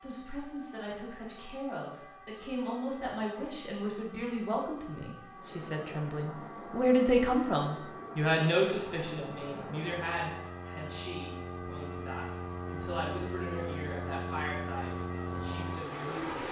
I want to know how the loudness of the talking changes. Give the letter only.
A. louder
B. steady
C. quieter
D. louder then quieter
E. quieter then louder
D.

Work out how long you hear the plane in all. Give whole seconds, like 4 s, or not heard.
11 s.